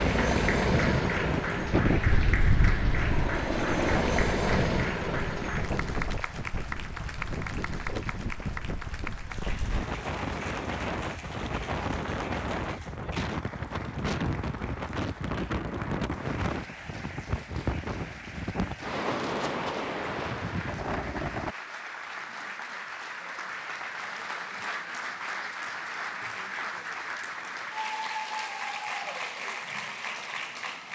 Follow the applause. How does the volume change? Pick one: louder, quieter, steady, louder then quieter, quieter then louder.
quieter then louder.